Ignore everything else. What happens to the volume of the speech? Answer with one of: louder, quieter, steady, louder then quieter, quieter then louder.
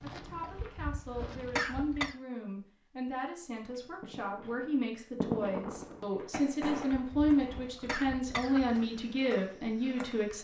louder.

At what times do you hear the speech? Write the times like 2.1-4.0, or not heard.
0.0-10.3.